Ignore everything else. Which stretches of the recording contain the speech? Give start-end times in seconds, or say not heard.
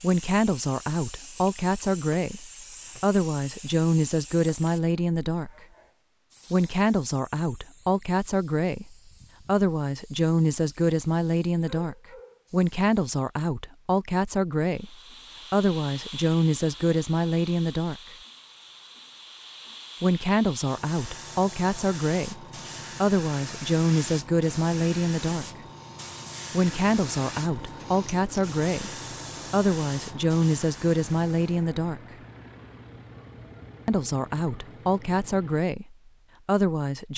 0.0-5.7, 6.5-18.0, 20.0-25.4, 26.5-32.1, 33.9-37.1.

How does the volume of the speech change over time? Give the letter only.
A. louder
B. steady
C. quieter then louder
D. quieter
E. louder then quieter
B.